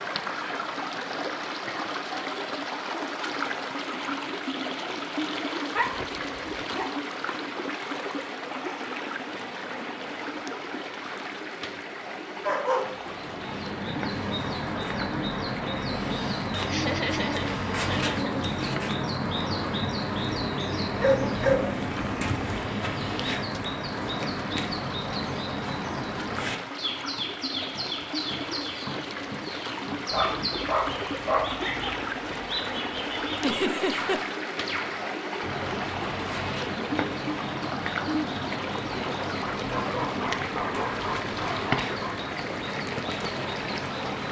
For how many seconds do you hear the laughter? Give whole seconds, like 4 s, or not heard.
3 s.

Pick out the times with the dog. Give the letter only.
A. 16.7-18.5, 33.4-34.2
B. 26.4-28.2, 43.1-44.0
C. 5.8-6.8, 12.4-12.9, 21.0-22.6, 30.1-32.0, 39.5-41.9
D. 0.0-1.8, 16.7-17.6
C.